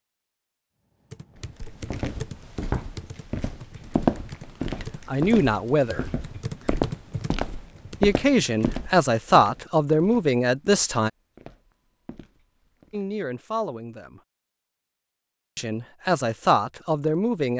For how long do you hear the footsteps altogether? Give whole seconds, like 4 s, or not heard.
12 s.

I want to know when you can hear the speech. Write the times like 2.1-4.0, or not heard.
4.8-6.0, 8.0-11.1, 12.9-14.2, 15.6-17.5.